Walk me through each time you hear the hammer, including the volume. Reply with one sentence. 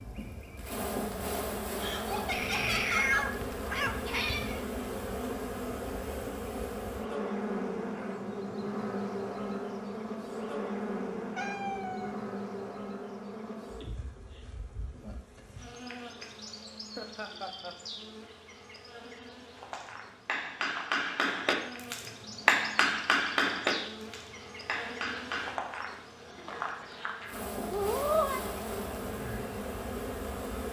You can hear the hammer from 19.7 to 25.6 s, getting louder then quieter.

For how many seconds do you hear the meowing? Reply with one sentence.
You can hear the meowing for 4 seconds altogether.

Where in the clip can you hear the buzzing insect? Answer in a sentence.
You can hear the buzzing insect from 0.0 to 30.6 s.